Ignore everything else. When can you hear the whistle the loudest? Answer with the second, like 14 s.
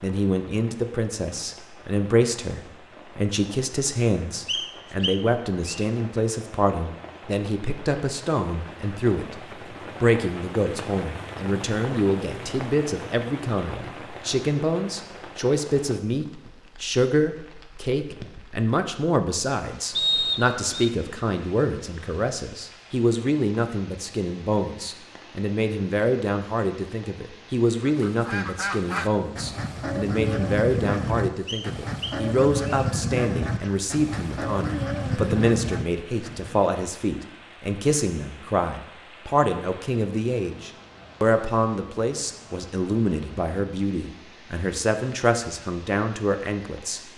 20 s.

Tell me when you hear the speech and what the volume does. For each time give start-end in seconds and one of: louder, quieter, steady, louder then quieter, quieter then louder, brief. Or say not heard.
0.0-47.0 steady.